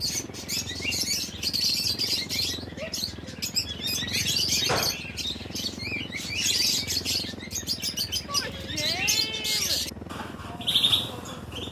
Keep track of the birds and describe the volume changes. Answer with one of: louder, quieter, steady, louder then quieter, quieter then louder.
steady.